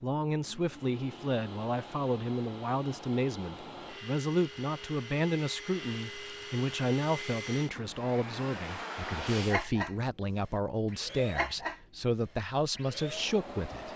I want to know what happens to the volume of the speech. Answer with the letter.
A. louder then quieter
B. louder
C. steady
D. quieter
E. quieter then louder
C.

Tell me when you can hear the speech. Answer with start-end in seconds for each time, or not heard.
0.0-13.9.